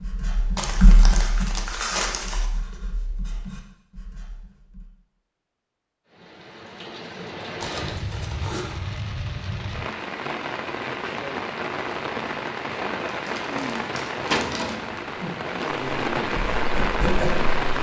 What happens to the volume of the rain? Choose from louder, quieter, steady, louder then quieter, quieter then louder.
louder.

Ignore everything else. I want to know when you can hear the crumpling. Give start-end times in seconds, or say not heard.
0.6-2.5, 7.6-8.8, 13.2-14.8.